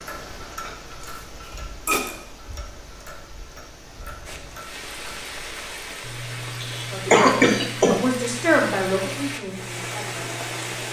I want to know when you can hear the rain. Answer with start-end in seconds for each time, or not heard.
4.2-10.8.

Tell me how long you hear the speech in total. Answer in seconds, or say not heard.
4 s.